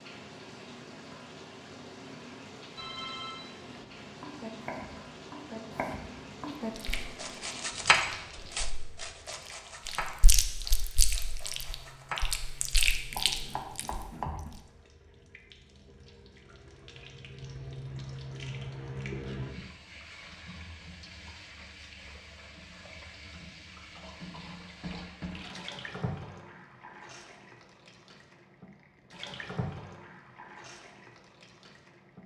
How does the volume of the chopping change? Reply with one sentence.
The volume of the chopping goes up, then down.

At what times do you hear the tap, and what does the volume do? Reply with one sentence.
The tap can be heard from 0.0 to 32.2 s, getting quieter then louder.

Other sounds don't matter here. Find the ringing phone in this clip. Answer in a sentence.
The ringing phone can be heard from 2.8 to 3.5 s.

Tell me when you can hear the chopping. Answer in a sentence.
The chopping can be heard from 4.0 to 14.5 s.